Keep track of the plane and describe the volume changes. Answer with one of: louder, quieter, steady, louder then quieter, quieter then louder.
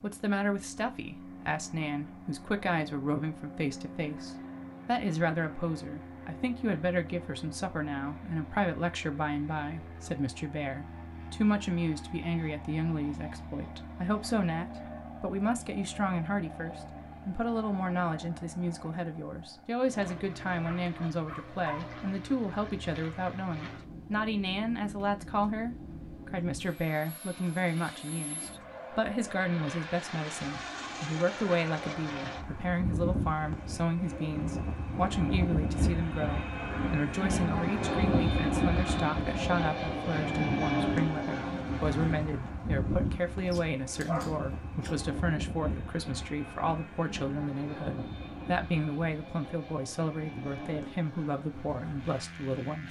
louder then quieter.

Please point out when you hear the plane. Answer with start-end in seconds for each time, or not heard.
0.0-52.8.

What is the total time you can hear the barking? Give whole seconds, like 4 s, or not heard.
3 s.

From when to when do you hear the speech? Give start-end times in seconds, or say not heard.
0.0-52.8.